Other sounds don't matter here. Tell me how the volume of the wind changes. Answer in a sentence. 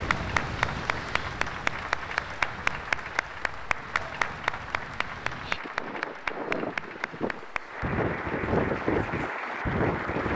The volume of the wind goes down, then up.